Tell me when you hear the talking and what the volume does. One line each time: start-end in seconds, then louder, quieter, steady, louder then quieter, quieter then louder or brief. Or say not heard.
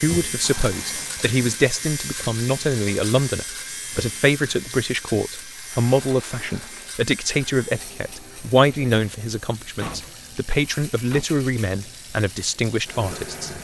0.0-13.5 steady.